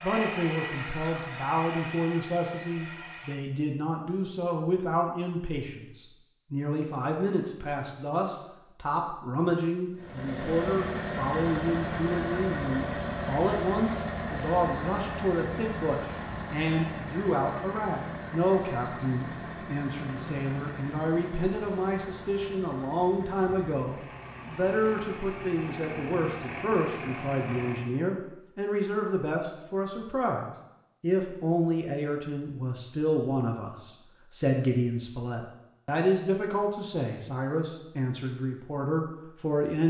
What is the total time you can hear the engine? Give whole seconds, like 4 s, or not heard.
18 s.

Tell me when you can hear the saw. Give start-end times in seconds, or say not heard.
0.0-3.4.